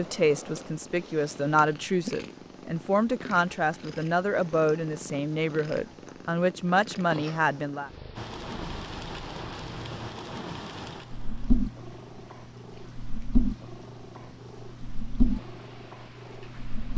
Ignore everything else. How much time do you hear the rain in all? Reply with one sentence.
The rain can be heard for 9 seconds in total.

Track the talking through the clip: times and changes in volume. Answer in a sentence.
The talking can be heard from 0.0 to 7.9 s, at a steady volume.